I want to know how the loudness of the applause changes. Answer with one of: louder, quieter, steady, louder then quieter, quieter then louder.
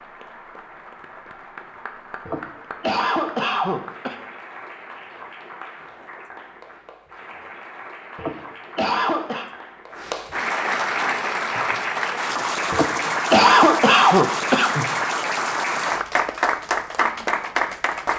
louder.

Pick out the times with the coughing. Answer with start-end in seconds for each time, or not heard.
2.2-4.2, 8.2-9.5, 12.7-14.8.